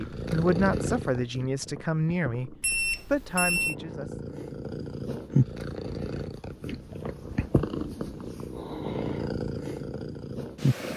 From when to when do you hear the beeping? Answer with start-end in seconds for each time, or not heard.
2.6-3.8.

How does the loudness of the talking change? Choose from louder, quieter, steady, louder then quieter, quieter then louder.
quieter then louder.